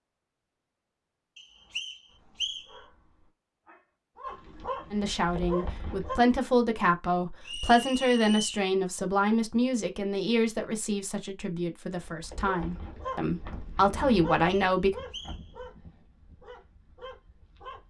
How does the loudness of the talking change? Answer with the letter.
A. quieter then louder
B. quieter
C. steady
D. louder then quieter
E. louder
A.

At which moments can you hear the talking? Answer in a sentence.
The talking can be heard from 4.9 to 14.9 s.